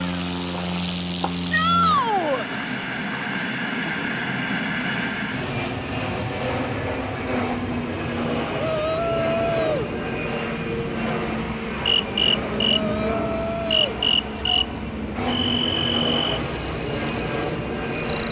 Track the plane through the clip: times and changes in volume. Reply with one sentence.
The plane can be heard from 0.0 to 18.2 s, at a steady volume.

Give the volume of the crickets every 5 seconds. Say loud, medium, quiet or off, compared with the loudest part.
medium, loud, loud, loud.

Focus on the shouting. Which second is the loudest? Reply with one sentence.
The loudest moment of the shouting is at 2 seconds.